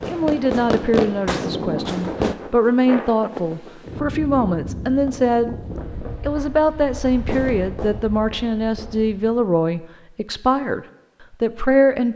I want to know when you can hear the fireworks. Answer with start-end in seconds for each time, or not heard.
0.0-2.4, 5.7-9.1.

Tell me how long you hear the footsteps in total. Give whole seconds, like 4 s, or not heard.
not heard.